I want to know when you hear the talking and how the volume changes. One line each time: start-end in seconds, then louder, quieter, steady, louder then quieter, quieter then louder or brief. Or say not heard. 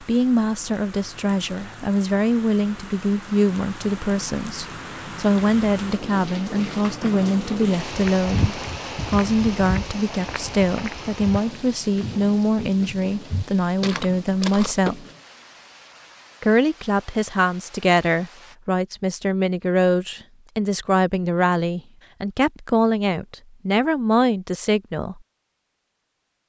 0.0-15.1 steady
16.4-25.2 steady.